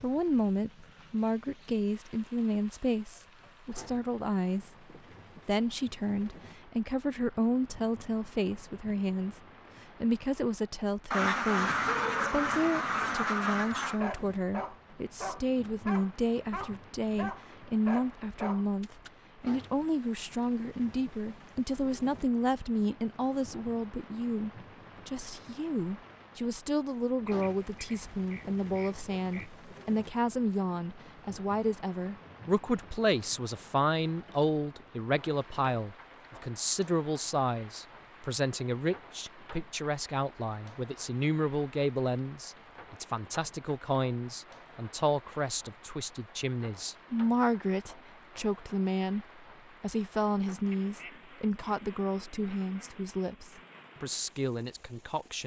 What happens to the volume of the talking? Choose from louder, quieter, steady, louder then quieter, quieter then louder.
steady.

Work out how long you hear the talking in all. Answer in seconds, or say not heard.
54 s.